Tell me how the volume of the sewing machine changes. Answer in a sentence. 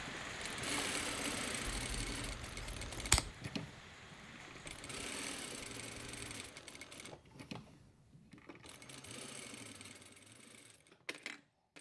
The volume of the sewing machine goes down.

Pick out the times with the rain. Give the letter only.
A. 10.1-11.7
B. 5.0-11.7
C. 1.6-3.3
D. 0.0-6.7
D.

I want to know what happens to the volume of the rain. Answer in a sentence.
The loudness of the rain goes down.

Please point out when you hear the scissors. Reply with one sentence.
The scissors can be heard from 1.6 to 3.3 s.